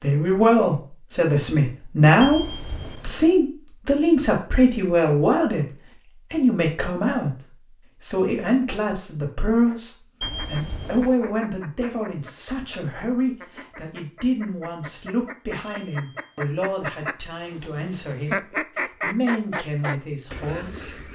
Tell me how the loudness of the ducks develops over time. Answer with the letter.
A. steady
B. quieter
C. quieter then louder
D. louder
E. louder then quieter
D.